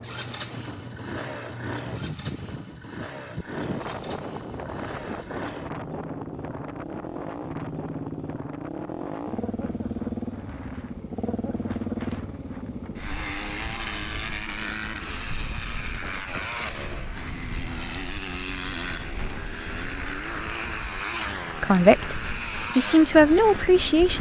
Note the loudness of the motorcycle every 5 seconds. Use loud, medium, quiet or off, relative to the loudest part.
medium, loud, loud, loud, loud.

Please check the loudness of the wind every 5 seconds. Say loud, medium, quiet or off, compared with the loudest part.
loud, loud, medium, medium, medium.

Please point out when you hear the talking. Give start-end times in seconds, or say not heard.
21.6-24.1.